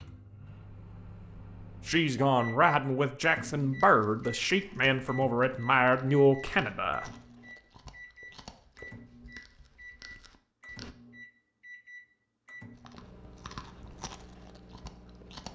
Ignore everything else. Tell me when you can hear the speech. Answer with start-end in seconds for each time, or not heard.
1.9-7.0.